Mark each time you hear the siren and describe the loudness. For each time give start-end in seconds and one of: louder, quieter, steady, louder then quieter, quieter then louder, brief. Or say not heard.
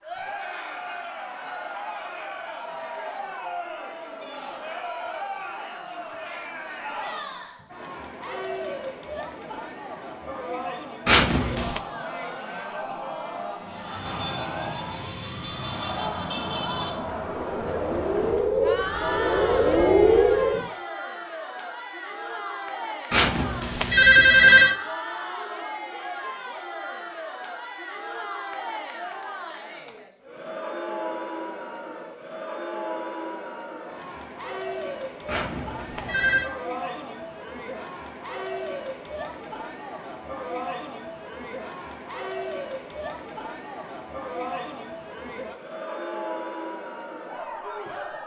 13.6-20.7 louder.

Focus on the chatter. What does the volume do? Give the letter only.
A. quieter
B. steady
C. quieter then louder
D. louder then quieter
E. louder
B.